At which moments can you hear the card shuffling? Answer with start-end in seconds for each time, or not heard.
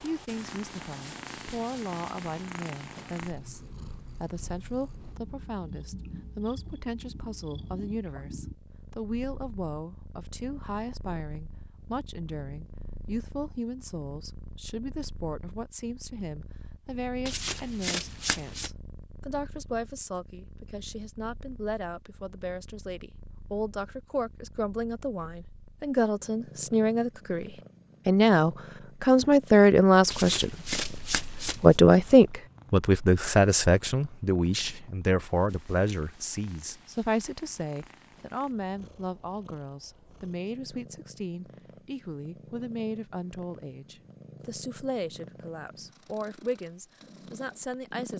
17.2-18.7, 30.1-31.8.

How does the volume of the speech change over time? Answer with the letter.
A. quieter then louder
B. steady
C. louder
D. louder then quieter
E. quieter
D.